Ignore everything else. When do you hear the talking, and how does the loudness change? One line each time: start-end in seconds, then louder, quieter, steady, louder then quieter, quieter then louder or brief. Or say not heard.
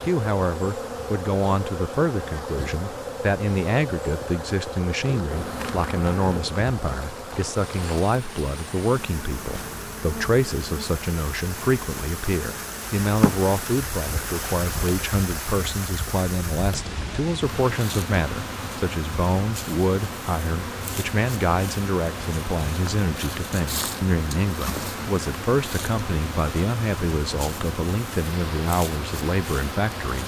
0.1-30.2 steady.